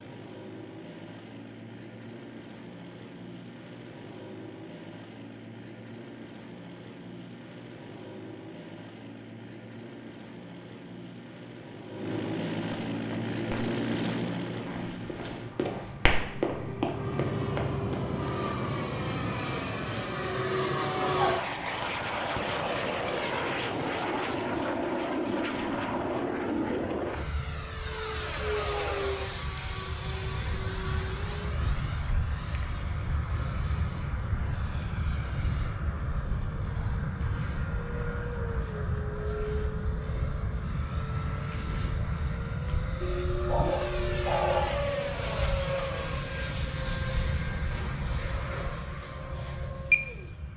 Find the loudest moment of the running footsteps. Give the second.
16 s.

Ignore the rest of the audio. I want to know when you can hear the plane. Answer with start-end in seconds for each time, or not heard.
0.0-50.5.